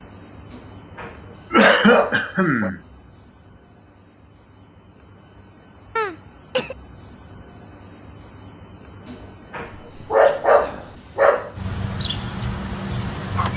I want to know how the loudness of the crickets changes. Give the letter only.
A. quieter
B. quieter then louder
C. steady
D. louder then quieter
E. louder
B.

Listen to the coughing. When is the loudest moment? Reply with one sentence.
The loudest moment of the coughing is at 2 seconds.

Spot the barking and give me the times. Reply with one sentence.
The barking can be heard from 0.5 to 2.7 s and from 9.1 to 11.5 s.